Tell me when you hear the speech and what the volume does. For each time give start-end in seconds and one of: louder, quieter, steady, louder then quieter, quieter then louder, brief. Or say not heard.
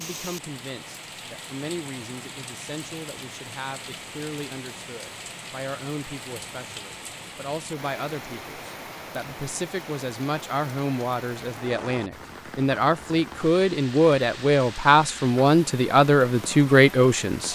0.0-17.5 louder.